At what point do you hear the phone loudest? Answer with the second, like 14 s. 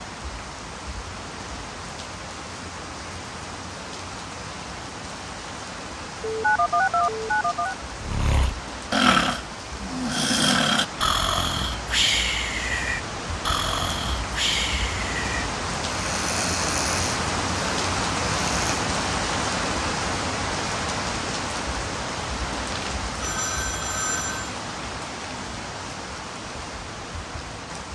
7 s.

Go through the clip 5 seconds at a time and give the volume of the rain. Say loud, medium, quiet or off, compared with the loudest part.
medium, medium, medium, loud, loud, medium.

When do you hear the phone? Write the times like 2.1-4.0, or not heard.
6.2-7.8, 22.7-24.6.